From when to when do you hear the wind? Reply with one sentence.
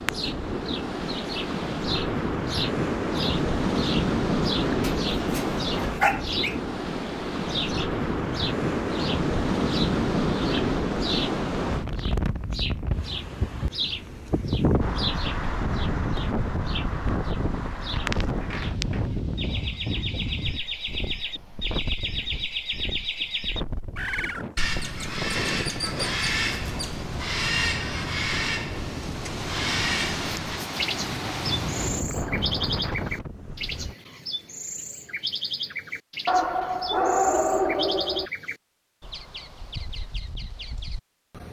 The wind can be heard from 0.0 to 34.0 s.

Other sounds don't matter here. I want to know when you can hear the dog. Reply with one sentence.
You can hear the dog from 4.8 to 6.6 s and from 36.2 to 38.3 s.